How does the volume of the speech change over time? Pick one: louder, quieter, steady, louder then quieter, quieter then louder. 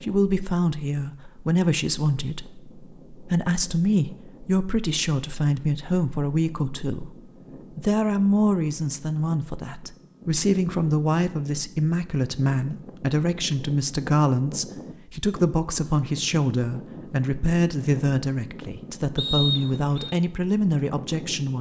steady.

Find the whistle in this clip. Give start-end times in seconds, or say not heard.
19.1-20.1.